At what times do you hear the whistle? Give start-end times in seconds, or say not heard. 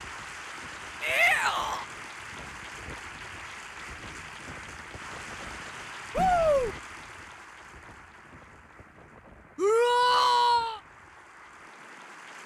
not heard.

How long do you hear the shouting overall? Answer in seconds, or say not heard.
3 s.